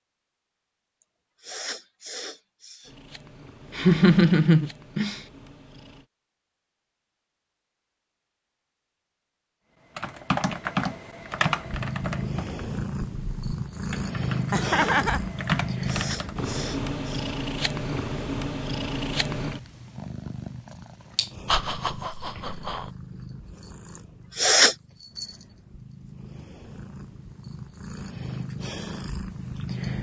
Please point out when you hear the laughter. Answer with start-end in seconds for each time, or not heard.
3.8-5.2, 14.5-15.2, 21.4-22.9.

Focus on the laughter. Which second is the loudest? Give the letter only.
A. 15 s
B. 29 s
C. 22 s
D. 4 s
D.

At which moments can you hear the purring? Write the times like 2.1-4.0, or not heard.
2.9-6.0, 11.6-29.9.